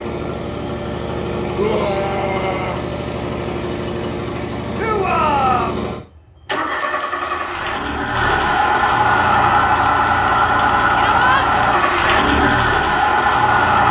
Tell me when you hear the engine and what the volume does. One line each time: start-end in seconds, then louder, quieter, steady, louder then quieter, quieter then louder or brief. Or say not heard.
0.0-13.8 louder.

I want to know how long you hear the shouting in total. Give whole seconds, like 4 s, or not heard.
3 s.